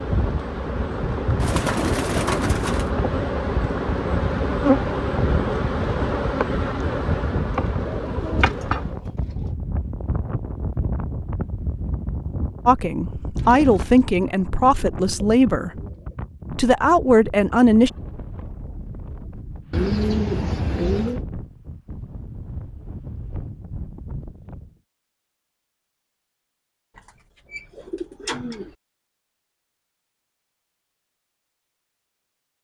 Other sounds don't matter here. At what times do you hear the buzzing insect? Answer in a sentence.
The buzzing insect can be heard from 0.0 to 9.0 s.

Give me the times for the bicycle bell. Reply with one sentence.
The bicycle bell can't be heard in this clip.